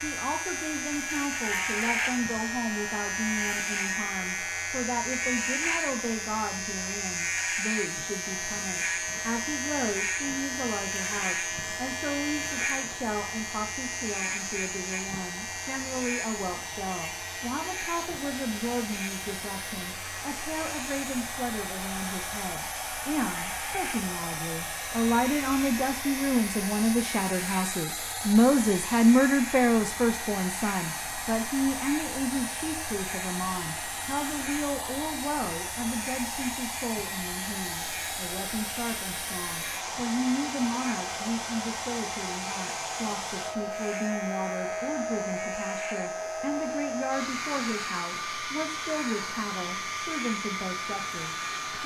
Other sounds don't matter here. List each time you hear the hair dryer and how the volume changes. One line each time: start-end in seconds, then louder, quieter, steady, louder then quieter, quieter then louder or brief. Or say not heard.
0.2-51.8 louder.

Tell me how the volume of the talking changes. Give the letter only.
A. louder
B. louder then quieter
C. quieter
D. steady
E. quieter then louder
B.